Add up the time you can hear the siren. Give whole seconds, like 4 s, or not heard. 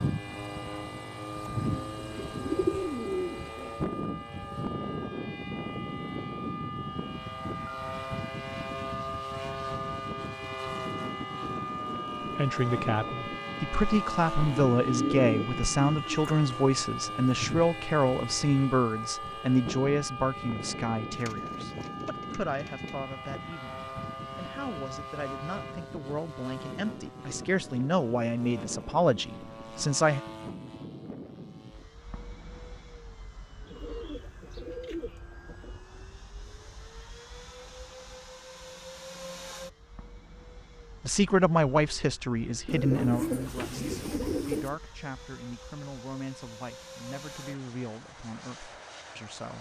26 s.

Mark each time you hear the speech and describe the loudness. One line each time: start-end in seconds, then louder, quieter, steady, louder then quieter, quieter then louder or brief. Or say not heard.
12.2-30.2 quieter then louder
41.0-49.5 quieter.